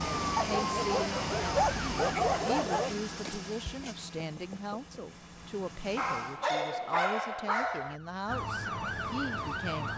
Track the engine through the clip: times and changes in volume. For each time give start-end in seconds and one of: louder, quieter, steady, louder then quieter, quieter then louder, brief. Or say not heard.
0.0-6.4 quieter.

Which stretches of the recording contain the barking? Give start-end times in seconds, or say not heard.
0.3-3.0, 6.0-8.0.